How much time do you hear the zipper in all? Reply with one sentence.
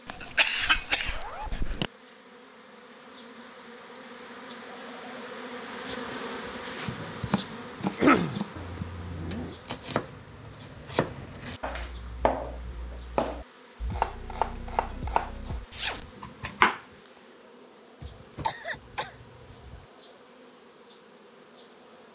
The zipper can be heard for 2 seconds in total.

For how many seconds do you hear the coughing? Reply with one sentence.
The coughing can be heard for 4 seconds in total.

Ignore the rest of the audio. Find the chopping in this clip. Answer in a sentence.
You can hear the chopping from 6.8 to 16.9 s.